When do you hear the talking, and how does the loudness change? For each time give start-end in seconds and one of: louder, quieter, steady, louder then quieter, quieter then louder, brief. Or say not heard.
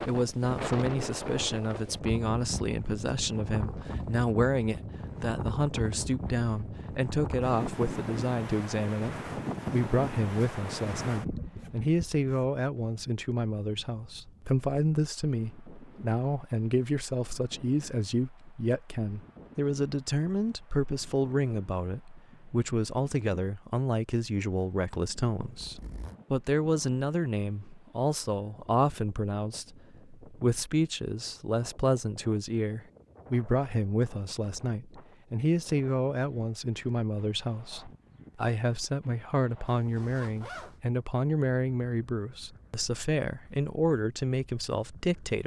0.1-45.4 steady.